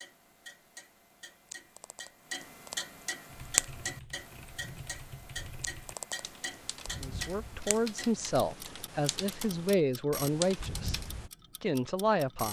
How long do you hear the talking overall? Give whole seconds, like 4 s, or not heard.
5 s.